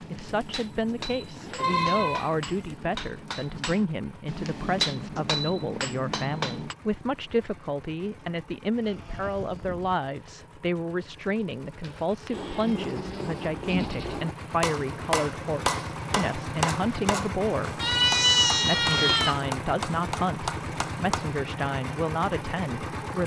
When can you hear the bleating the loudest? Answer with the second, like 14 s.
18 s.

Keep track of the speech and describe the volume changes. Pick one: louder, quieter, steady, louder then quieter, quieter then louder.
steady.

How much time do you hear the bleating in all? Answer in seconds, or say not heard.
8 s.